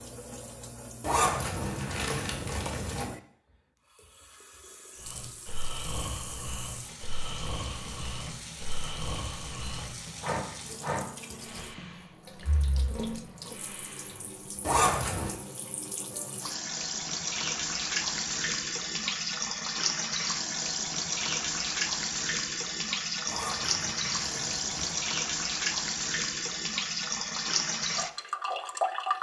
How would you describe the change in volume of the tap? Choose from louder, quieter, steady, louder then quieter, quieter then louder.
louder.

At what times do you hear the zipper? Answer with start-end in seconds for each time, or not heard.
1.0-3.0, 14.6-15.3, 23.2-25.1.